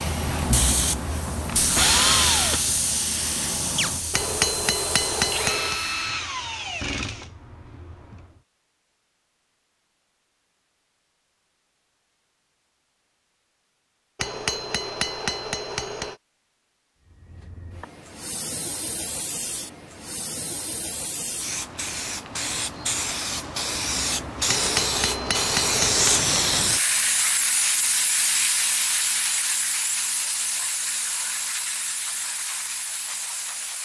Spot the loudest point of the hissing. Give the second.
26 s.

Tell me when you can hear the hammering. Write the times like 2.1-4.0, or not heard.
4.1-5.8, 14.2-16.1, 24.4-26.2.